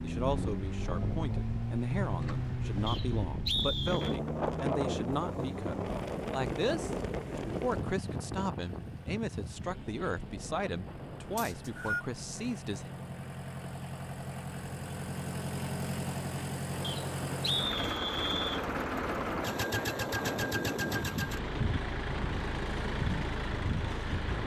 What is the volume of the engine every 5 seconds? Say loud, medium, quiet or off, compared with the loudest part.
loud, medium, medium, loud, loud.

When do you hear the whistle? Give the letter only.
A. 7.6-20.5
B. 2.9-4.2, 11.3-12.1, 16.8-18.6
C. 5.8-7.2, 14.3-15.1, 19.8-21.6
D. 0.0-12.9
B.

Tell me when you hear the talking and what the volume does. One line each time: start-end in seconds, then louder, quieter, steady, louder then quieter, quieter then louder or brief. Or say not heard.
0.0-12.9 steady.